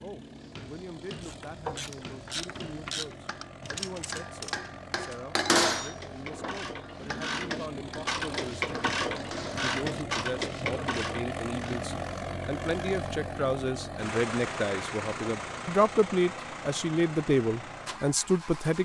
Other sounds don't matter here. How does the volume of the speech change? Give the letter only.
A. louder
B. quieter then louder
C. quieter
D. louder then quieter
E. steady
A.